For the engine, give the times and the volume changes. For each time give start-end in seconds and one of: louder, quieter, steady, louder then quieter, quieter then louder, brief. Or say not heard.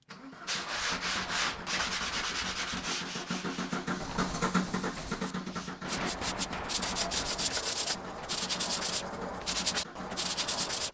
0.0-10.8 louder then quieter.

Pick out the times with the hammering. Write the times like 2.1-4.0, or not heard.
1.0-2.8, 6.0-7.7.